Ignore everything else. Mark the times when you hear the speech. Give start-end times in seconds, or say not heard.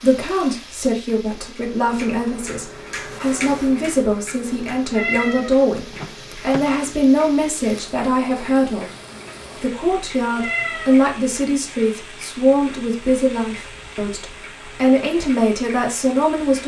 0.0-8.9, 9.6-16.6.